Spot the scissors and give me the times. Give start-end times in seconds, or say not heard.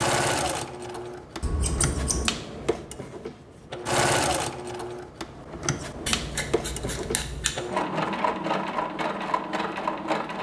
1.4-2.3, 6.0-7.5.